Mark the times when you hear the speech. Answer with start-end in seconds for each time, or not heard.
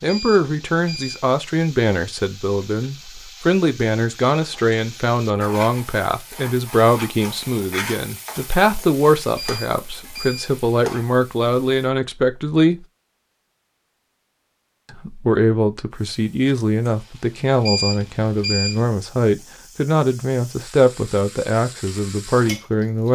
0.0-12.8, 14.9-23.1.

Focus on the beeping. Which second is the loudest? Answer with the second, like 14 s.
18 s.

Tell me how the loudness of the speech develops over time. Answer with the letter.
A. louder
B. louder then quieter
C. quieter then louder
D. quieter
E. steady
E.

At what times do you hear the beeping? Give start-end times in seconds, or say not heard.
0.1-1.3, 9.3-10.5, 17.6-18.9.